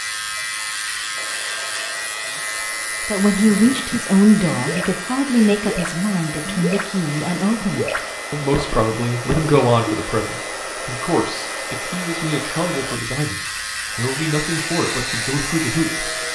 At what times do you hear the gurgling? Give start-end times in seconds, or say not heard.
3.4-6.9, 7.5-10.1.